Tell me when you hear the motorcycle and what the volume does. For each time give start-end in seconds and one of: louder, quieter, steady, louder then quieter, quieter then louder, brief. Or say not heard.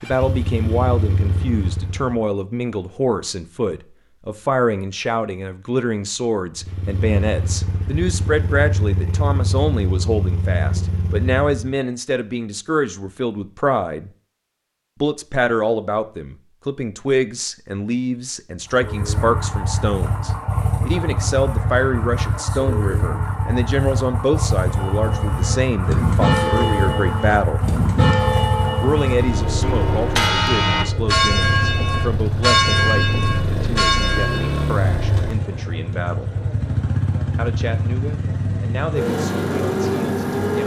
0.0-2.2 brief
6.5-11.7 steady
18.7-40.6 steady.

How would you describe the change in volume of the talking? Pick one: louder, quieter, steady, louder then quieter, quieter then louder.
quieter.